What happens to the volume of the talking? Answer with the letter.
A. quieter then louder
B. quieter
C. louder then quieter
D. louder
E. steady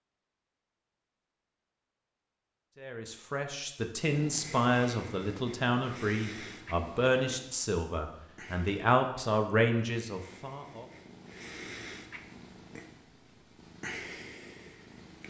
E.